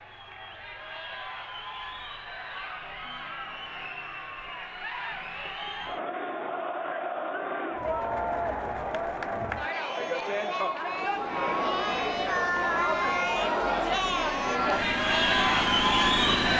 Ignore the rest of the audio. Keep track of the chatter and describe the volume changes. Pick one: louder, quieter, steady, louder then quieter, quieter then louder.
louder.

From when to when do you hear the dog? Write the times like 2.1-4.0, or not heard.
not heard.